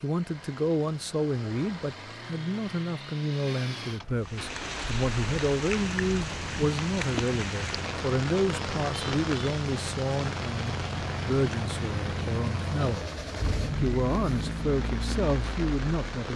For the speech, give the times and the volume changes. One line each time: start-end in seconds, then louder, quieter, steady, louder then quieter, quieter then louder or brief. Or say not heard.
0.0-16.3 steady.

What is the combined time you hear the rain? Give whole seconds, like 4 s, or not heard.
12 s.